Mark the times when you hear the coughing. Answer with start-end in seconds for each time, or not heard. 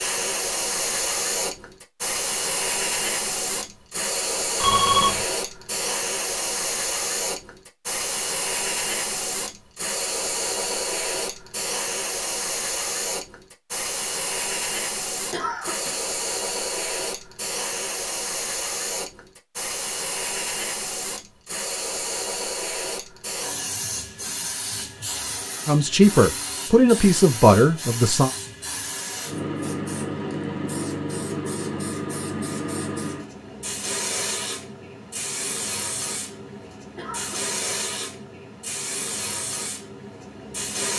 15.3-16.0, 37.0-37.5.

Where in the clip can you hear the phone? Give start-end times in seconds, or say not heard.
4.6-5.2.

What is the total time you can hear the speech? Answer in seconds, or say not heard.
3 s.